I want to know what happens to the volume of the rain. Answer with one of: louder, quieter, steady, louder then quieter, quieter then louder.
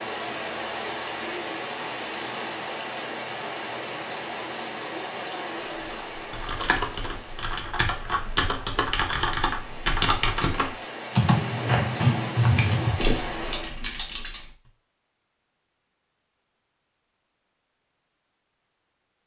quieter then louder.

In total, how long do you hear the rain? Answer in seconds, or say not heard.
14 s.